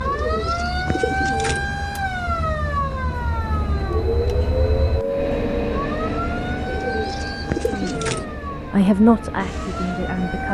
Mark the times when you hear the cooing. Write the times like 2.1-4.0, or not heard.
0.0-1.7, 6.7-8.2.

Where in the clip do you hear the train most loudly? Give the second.
6 s.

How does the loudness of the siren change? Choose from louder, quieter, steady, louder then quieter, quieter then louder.
quieter.